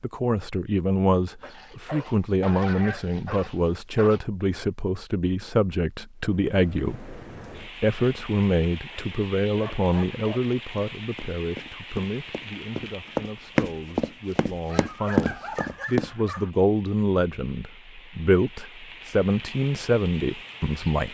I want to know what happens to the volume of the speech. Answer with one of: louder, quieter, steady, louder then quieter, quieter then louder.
quieter then louder.